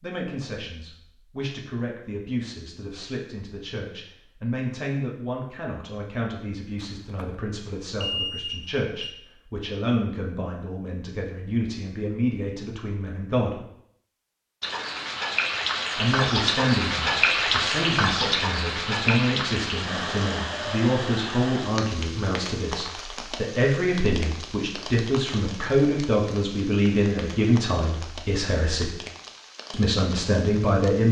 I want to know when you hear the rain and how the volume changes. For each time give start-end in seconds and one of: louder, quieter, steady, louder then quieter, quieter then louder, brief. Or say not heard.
14.6-31.0 quieter.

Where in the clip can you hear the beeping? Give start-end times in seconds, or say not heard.
6.8-7.2, 8.0-9.1.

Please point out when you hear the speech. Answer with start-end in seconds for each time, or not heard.
0.0-13.6, 15.9-28.9, 29.7-31.0.